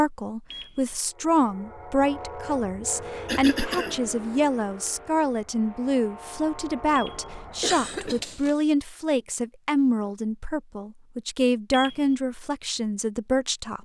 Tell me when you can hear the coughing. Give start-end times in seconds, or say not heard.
2.9-4.0, 7.6-8.6.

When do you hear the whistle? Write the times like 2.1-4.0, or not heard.
not heard.